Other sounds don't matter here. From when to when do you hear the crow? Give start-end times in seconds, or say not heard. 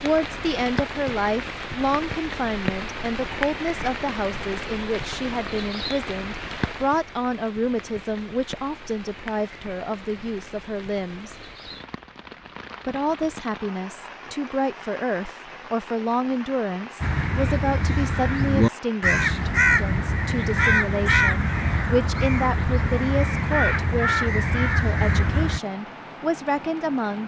17.0-25.6.